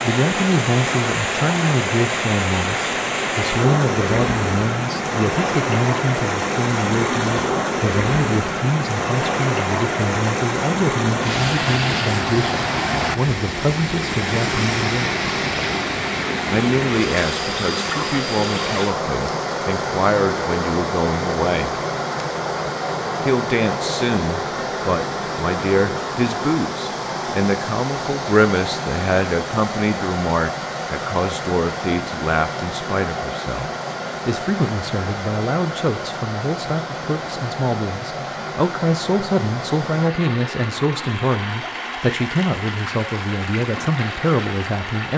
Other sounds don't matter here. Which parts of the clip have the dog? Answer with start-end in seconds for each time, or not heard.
not heard.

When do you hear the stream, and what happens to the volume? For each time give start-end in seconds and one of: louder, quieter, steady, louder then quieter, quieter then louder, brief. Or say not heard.
0.0-45.1 quieter.